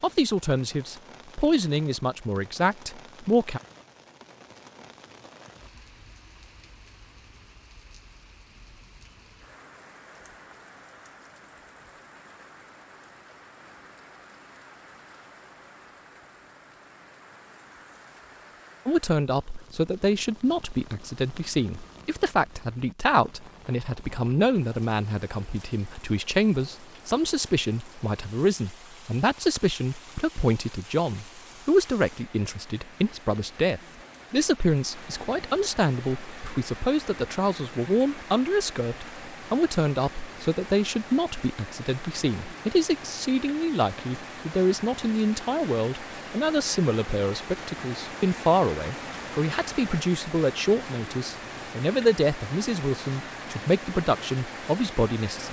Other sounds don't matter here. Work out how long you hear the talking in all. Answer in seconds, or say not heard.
40 s.